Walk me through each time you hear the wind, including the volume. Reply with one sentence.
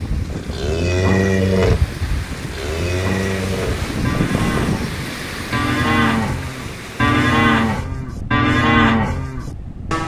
You can hear the wind from 0.0 to 10.0 s, getting louder then quieter.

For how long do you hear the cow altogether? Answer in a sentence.
The cow can be heard for 10 seconds in total.